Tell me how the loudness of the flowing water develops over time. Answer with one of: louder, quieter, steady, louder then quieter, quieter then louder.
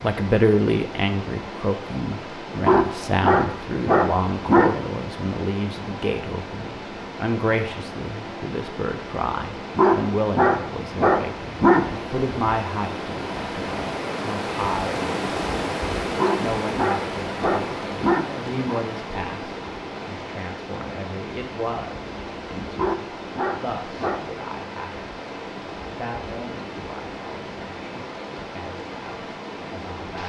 louder then quieter.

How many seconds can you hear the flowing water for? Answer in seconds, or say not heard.
30 s.